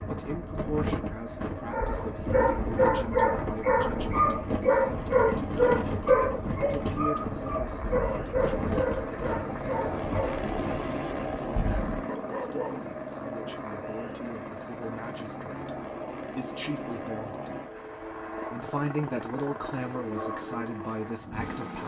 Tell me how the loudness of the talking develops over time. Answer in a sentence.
The volume of the talking goes down, then up.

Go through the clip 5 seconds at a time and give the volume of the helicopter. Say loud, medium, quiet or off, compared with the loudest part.
medium, loud, loud, loud, loud.